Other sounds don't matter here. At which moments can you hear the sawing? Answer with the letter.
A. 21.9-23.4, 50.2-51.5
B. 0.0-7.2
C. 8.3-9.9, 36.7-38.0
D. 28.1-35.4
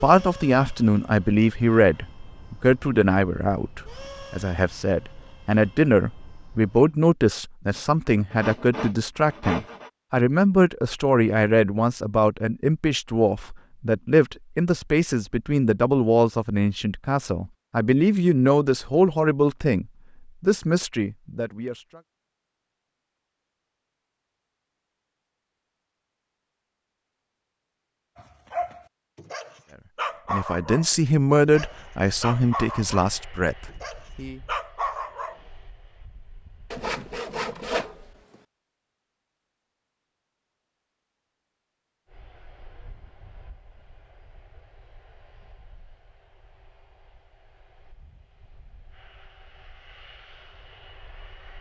C.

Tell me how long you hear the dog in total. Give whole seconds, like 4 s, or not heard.
7 s.